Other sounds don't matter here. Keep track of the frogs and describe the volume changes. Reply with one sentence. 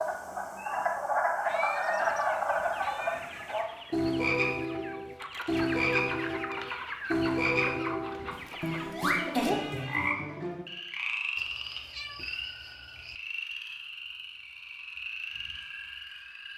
The loudness of the frogs goes down.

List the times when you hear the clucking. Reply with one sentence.
You can hear the clucking from 1.9 to 8.8 s.